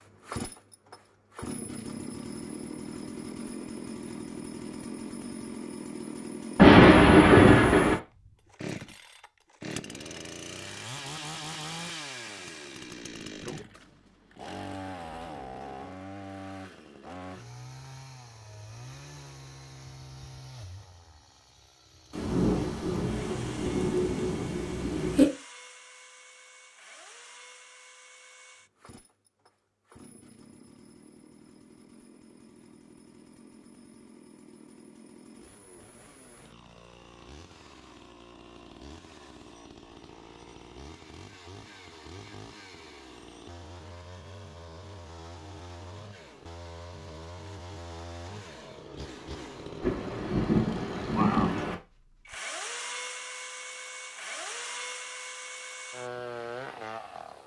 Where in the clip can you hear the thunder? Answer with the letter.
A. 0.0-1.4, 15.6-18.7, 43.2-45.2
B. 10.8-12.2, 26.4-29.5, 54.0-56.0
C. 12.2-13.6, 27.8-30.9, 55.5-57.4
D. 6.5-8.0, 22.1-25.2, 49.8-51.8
D.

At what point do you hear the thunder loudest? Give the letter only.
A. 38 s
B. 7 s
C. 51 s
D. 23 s
B.